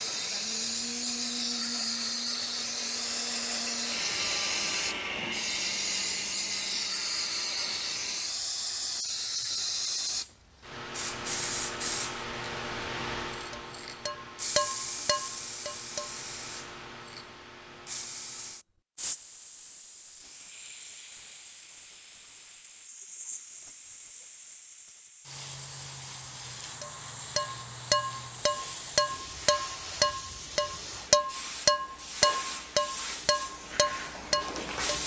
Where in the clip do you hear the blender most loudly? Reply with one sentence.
The loudest moment of the blender is at 5 seconds.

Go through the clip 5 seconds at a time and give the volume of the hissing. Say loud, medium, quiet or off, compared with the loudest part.
loud, loud, loud, medium, quiet, medium, medium.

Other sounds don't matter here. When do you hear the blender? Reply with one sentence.
The blender can be heard from 0.0 to 8.4 s.